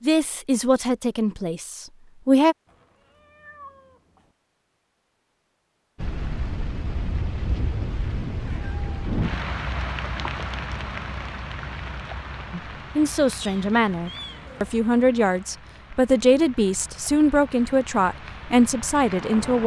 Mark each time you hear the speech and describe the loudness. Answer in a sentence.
The speech can be heard briefly from 0.0 to 2.5 s; and from 12.5 to 19.6 s, at a steady volume.